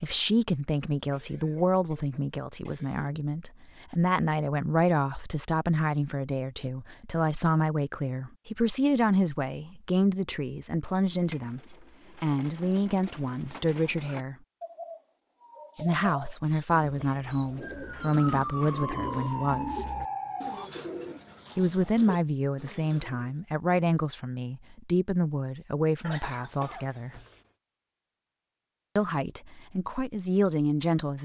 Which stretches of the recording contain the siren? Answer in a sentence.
You can hear the siren from 17.6 to 20.7 s.